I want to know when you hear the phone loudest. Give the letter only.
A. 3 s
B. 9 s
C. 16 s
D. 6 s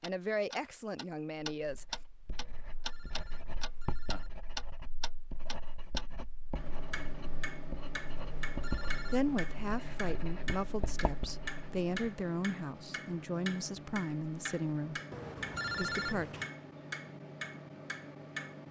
C.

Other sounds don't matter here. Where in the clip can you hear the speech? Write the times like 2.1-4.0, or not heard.
0.0-1.9, 9.1-15.0, 15.8-16.4.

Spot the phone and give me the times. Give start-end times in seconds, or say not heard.
2.4-4.3, 8.2-9.3, 15.1-16.5.